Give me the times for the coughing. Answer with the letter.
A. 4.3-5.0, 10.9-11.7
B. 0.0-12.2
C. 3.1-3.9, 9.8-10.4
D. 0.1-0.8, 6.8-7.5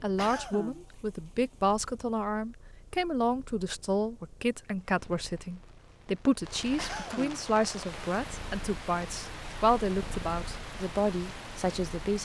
D.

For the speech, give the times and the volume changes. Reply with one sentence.
You can hear the speech from 0.0 to 12.2 s, at a steady volume.